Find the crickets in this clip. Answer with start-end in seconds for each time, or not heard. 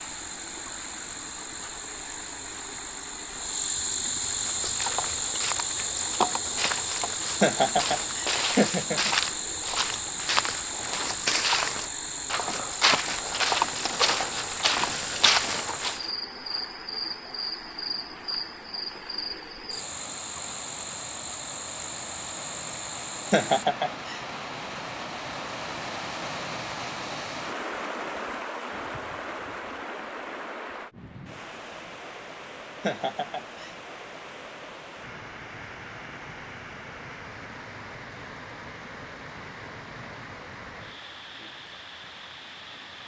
0.0-23.6.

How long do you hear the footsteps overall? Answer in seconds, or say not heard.
12 s.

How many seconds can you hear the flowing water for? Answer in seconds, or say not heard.
43 s.